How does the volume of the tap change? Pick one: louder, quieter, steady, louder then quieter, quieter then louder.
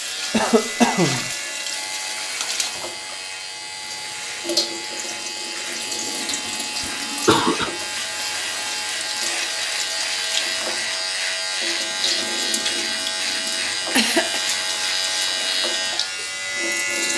steady.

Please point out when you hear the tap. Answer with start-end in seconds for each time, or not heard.
0.0-17.1.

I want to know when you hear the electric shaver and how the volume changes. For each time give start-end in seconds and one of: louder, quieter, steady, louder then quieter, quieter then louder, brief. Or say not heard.
0.0-17.1 louder.